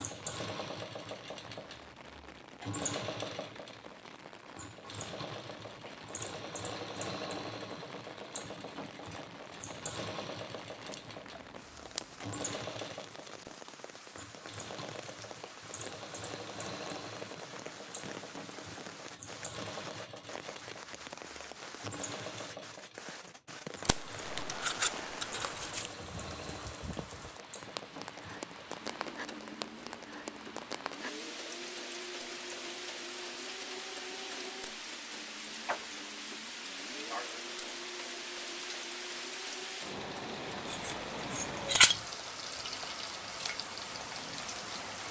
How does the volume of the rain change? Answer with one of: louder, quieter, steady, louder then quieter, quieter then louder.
louder.